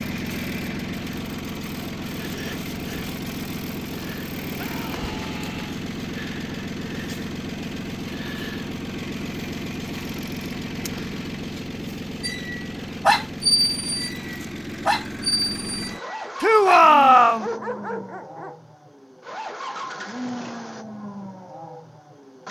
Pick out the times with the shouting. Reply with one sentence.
The shouting can be heard from 4.5 to 5.8 s and from 16.4 to 17.5 s.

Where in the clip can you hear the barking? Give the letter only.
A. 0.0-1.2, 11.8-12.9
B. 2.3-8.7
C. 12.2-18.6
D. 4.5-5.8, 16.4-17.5
C.